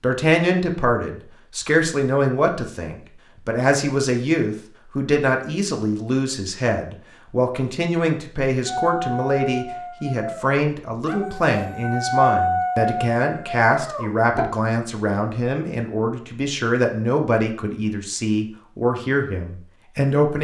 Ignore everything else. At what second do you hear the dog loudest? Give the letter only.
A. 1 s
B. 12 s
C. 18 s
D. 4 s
B.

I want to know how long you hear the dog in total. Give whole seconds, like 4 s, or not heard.
6 s.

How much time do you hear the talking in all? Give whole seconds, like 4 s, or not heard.
20 s.